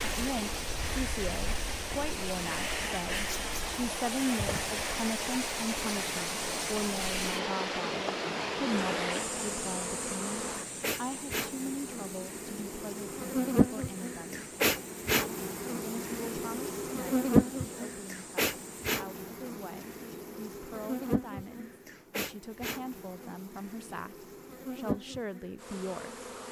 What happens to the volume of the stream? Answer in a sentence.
The loudness of the stream goes down.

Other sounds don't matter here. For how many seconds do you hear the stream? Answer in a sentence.
You can hear the stream for 19 seconds altogether.